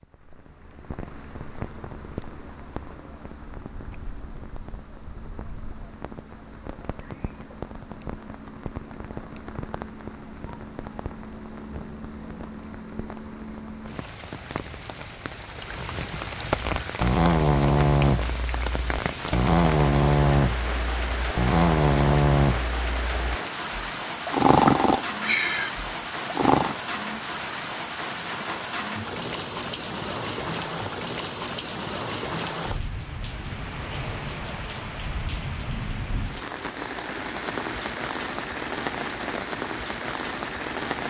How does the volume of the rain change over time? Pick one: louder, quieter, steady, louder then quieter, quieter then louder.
louder.